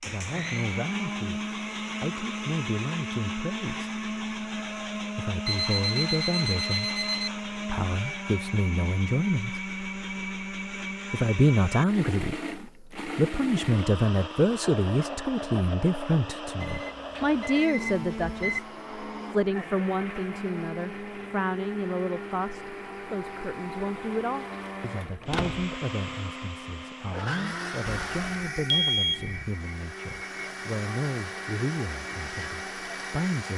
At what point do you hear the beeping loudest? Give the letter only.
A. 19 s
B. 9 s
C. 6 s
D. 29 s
D.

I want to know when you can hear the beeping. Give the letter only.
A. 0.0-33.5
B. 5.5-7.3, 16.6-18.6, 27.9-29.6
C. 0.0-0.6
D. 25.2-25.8
B.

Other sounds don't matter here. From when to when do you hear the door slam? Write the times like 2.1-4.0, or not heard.
25.2-25.8.